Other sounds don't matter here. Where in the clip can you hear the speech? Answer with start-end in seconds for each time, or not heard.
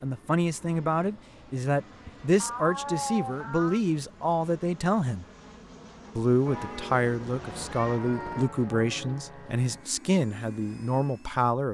0.0-5.2, 6.2-11.6.